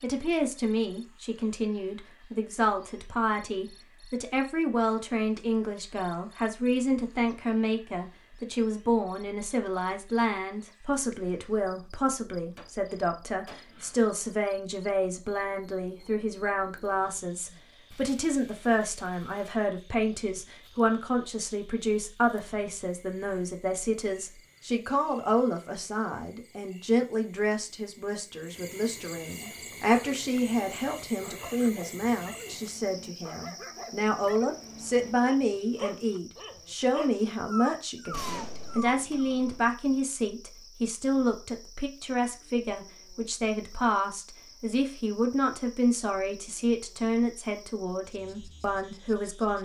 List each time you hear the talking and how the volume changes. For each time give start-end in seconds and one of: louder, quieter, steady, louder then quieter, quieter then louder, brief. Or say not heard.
0.0-49.6 steady.